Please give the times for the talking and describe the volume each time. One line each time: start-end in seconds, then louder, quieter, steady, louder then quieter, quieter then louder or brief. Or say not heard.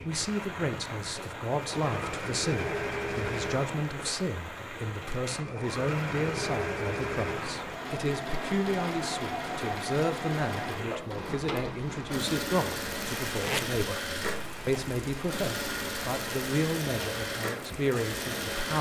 0.0-18.7 steady.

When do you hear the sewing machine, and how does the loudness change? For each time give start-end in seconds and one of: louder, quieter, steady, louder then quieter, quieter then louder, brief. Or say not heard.
0.0-18.7 steady.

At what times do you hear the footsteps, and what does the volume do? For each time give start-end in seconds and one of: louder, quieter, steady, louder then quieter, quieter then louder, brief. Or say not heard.
not heard.